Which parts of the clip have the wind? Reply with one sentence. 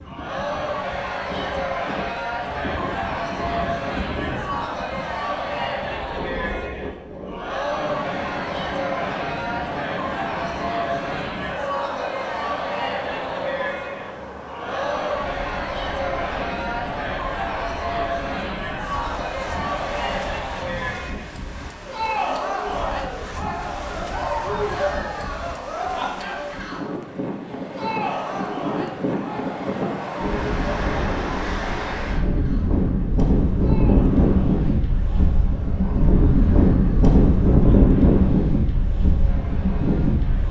You can hear the wind from 0.0 to 40.4 s.